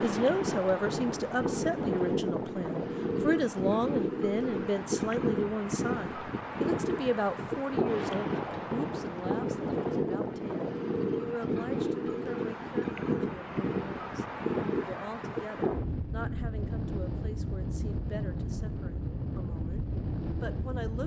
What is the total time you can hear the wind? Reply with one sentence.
The wind can be heard for 21 seconds in total.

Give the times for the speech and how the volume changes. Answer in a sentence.
You can hear the speech from 0.0 to 21.0 s, getting quieter.